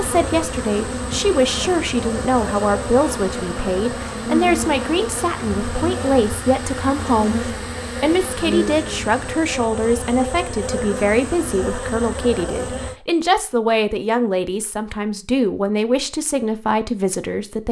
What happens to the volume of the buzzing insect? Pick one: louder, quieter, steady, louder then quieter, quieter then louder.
steady.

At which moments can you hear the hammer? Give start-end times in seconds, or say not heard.
not heard.